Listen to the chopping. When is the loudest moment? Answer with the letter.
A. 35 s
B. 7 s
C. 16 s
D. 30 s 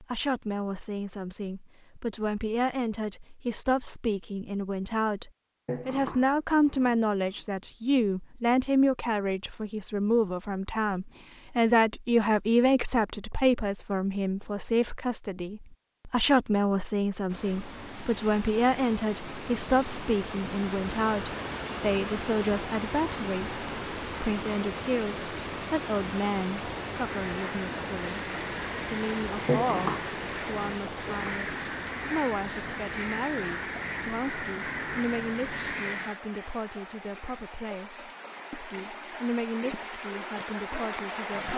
D.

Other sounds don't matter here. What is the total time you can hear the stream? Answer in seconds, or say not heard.
24 s.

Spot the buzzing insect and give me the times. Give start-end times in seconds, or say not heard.
not heard.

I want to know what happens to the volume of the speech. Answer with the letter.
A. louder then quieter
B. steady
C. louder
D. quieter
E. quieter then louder
D.